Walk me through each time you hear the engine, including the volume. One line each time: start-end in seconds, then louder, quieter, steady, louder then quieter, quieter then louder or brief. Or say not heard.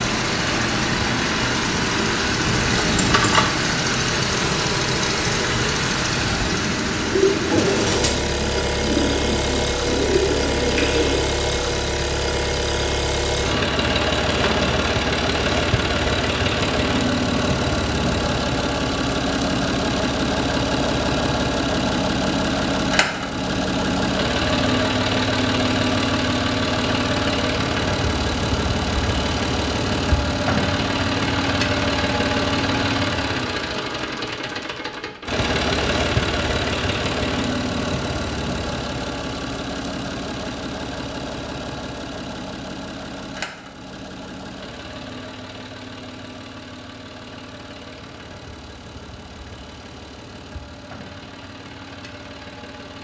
0.0-52.9 quieter.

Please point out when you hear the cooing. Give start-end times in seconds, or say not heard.
6.2-11.3.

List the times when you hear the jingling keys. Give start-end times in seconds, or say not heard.
2.5-3.5.